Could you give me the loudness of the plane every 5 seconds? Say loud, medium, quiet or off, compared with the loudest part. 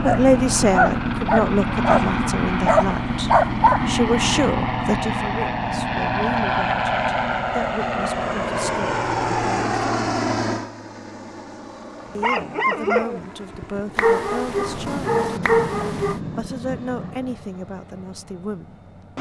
loud, loud, medium, quiet.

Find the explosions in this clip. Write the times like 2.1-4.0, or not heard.
14.4-17.4.